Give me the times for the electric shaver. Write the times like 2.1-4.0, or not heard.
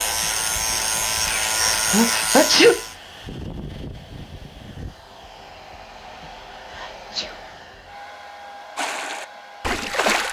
0.0-3.0.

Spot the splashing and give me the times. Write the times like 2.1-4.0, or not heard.
8.8-10.2.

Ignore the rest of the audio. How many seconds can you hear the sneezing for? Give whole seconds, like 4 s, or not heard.
2 s.